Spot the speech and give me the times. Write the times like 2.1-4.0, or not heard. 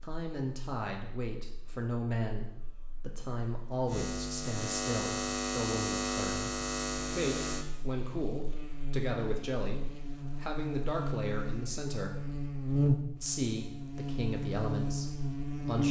0.0-12.2, 13.2-15.8.